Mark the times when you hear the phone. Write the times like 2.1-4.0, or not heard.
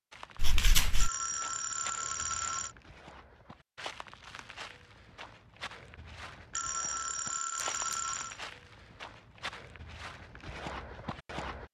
1.0-2.8, 6.5-8.4.